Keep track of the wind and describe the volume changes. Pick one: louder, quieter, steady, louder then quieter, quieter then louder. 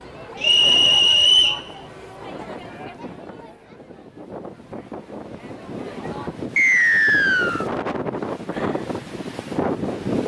louder.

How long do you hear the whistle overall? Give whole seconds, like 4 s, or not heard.
2 s.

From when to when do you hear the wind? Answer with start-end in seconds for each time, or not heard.
0.0-10.2.